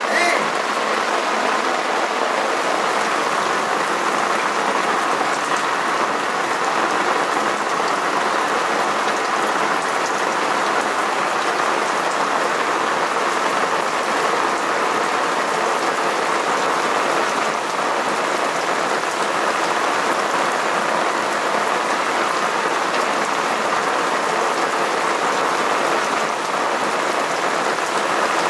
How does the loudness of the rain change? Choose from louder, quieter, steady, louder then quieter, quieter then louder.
steady.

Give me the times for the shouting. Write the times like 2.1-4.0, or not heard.
0.1-0.5.